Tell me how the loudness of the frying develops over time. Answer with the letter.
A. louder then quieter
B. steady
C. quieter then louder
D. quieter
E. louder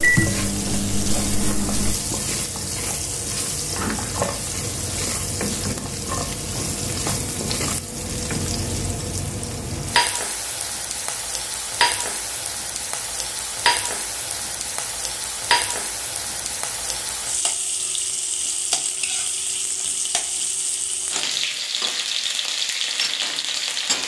B.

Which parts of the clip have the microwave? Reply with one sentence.
You can hear the microwave from 0.0 to 1.9 s.